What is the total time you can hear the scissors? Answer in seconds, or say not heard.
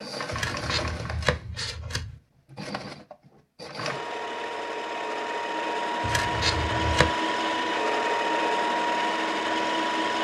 3 s.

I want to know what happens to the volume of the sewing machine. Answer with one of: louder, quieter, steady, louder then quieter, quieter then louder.
louder.